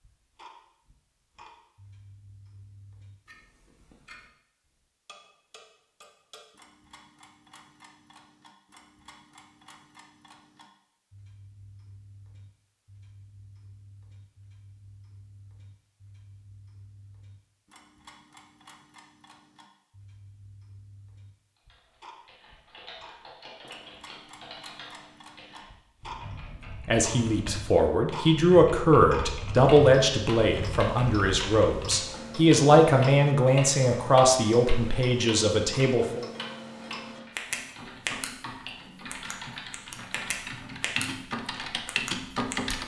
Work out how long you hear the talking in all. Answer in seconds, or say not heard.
9 s.